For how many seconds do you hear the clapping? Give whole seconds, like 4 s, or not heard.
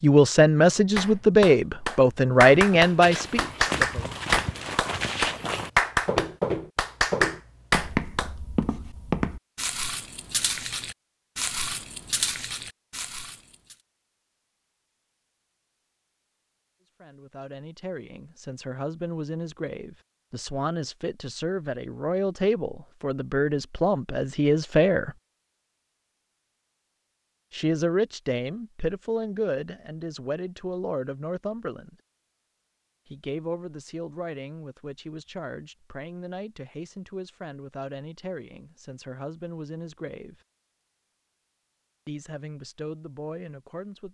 7 s.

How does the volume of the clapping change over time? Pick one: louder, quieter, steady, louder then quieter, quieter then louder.
steady.